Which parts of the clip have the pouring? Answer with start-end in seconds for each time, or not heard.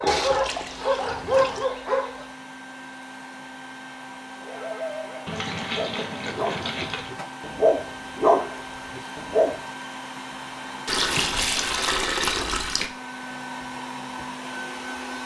0.1-1.7, 5.2-7.1, 10.8-12.9.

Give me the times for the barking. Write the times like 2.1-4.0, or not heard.
0.0-2.2, 4.4-9.5.